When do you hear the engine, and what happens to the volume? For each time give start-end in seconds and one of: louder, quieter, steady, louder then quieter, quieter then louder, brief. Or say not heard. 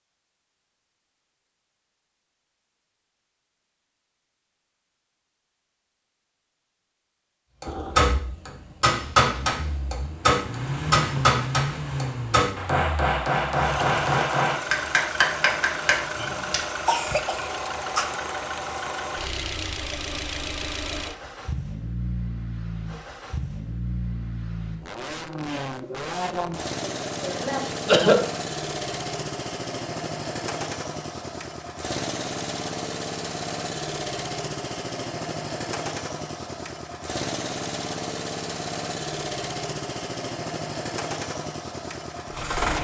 7.7-42.7 steady.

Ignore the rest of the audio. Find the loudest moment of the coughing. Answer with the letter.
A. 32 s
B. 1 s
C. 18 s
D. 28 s
D.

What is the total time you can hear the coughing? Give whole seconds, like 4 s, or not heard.
3 s.